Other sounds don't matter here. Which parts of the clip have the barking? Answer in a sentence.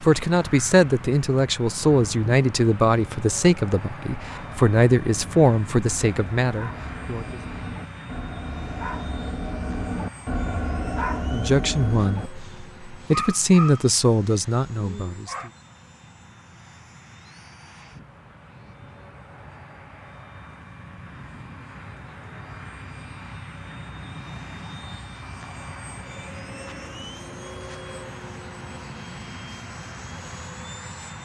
You can hear the barking from 4.1 to 15.5 s.